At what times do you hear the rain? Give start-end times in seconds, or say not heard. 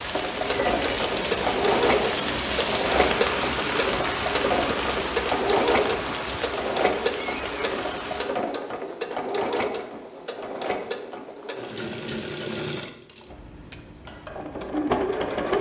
0.0-8.4.